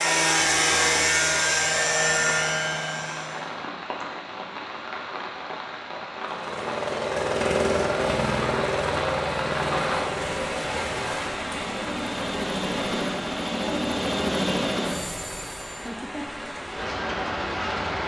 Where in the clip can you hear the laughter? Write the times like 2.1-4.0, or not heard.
15.7-16.4.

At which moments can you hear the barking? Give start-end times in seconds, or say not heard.
not heard.